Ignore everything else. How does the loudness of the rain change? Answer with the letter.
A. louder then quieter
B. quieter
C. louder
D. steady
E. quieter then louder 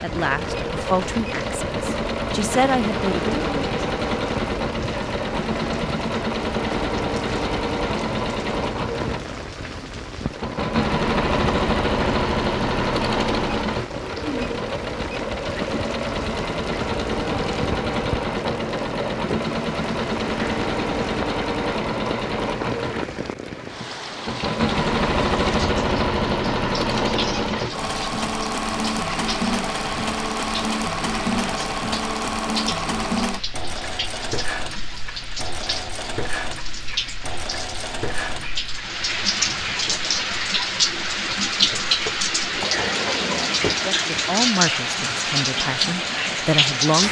C.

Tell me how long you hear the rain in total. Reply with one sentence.
The rain can be heard for 47 seconds in total.